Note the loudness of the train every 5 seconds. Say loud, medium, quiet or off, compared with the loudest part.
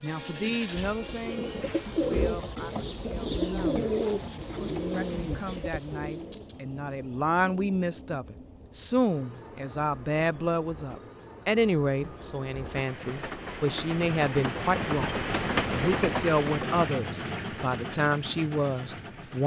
quiet, quiet, medium, loud.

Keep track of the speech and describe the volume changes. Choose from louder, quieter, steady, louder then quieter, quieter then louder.
louder.